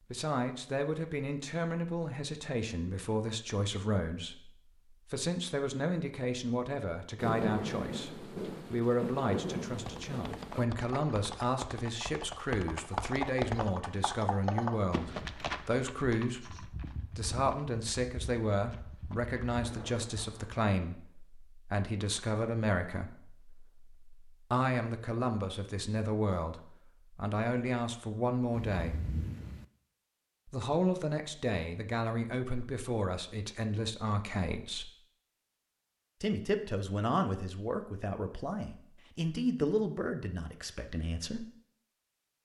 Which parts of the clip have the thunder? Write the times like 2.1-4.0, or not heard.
7.2-10.7, 19.6-20.6, 28.5-29.6.